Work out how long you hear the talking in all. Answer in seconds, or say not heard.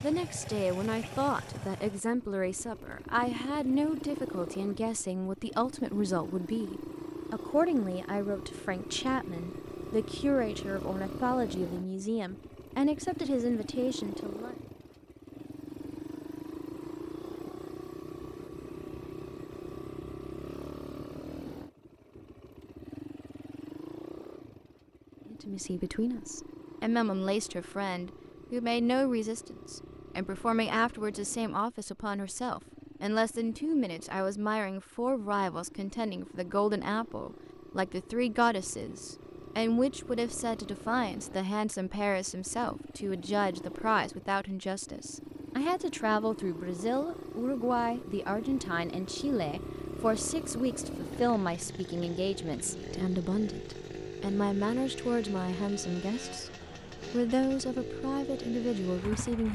48 s.